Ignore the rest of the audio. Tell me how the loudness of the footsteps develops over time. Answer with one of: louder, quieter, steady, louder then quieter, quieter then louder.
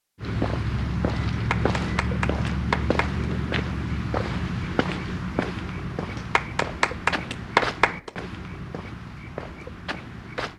quieter.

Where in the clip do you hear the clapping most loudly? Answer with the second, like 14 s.
8 s.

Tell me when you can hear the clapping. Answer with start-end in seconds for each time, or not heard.
1.3-3.2, 6.2-8.1.